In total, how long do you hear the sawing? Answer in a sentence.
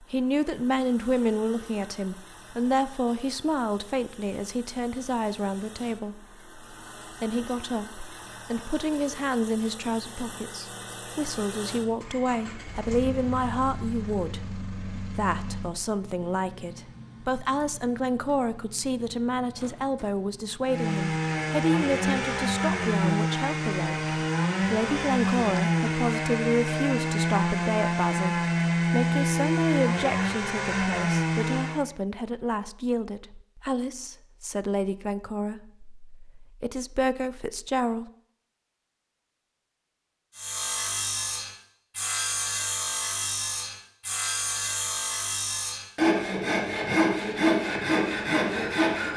The sawing can be heard for 20 seconds in total.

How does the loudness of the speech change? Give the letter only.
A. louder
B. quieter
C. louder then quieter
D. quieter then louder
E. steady
E.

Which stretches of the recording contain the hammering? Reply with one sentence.
You can't hear the hammering here.